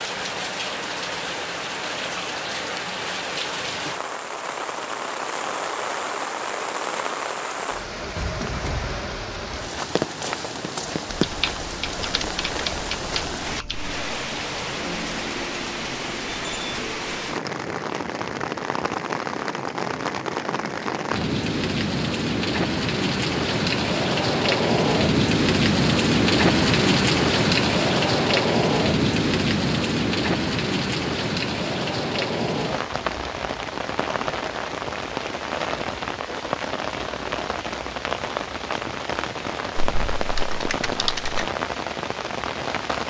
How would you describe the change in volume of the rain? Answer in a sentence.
The loudness of the rain goes up, then down.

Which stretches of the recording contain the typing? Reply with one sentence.
You can hear the typing from 11.1 to 13.9 s and from 39.8 to 41.5 s.